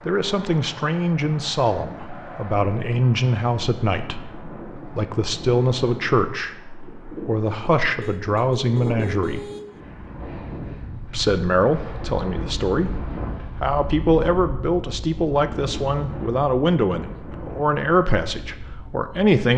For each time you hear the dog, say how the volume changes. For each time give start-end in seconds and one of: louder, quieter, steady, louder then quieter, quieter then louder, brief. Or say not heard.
not heard.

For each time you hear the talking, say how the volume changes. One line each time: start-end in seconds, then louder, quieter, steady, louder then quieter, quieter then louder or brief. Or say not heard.
0.1-9.4 steady
11.1-19.5 steady.